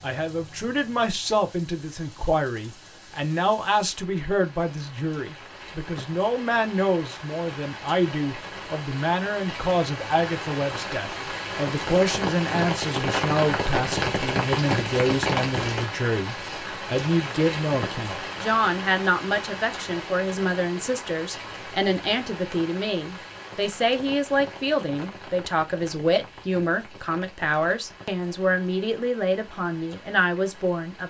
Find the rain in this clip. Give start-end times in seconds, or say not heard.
0.0-31.0.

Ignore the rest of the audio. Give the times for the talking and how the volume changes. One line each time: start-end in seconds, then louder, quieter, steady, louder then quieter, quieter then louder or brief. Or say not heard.
0.0-31.0 steady.